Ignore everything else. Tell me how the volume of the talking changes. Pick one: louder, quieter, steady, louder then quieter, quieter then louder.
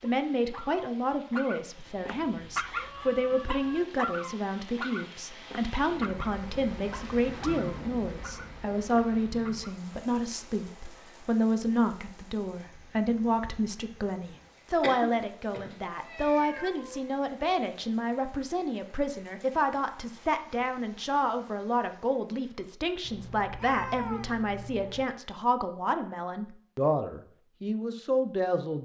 steady.